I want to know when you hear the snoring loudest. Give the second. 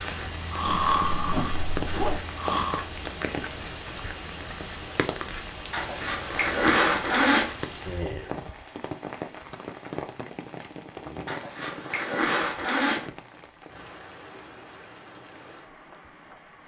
1 s.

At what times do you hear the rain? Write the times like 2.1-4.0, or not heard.
0.0-16.6.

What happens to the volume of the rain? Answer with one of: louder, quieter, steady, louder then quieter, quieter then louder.
quieter.